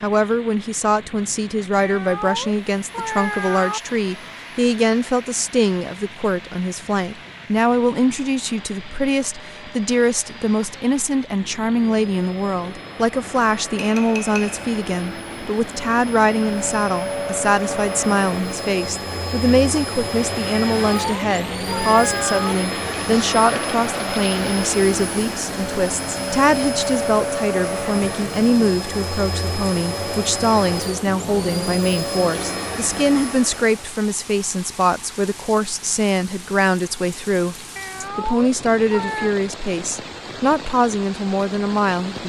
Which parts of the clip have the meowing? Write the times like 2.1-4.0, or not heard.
1.8-3.8, 20.8-22.6, 37.8-39.4.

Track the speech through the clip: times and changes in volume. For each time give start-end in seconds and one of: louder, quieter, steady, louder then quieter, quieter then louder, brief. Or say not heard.
0.0-42.2 steady.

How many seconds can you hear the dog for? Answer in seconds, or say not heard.
not heard.